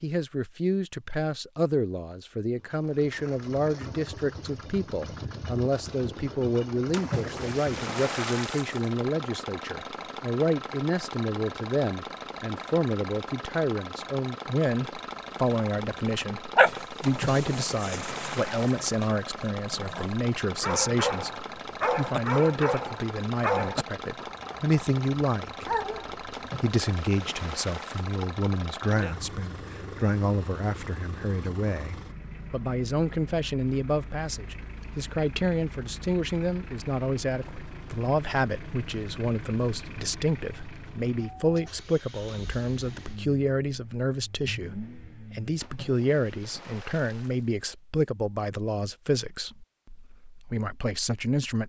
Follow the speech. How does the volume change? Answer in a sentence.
The volume of the speech stays about the same.